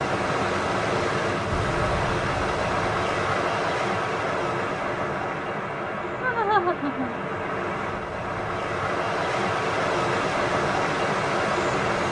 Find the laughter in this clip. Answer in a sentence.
The laughter can be heard from 6.2 to 7.1 s.